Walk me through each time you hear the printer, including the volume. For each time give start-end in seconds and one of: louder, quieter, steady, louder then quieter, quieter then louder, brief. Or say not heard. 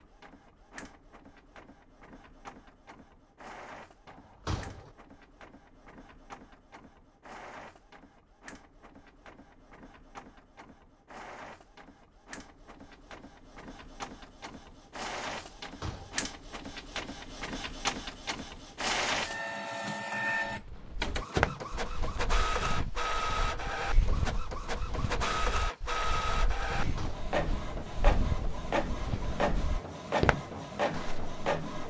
0.0-31.8 louder.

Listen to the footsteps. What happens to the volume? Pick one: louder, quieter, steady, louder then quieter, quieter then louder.
quieter then louder.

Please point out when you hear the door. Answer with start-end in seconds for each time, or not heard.
4.0-4.9, 15.4-16.2, 26.8-27.4.